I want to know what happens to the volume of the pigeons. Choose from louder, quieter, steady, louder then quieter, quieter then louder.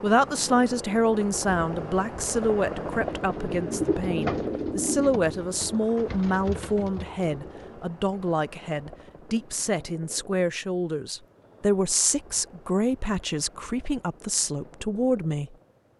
quieter.